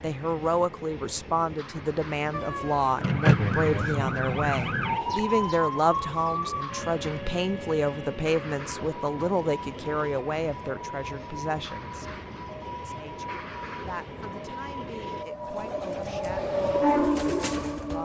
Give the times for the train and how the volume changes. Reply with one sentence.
You can hear the train from 0.0 to 18.0 s, getting louder.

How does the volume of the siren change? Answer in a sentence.
The loudness of the siren goes down.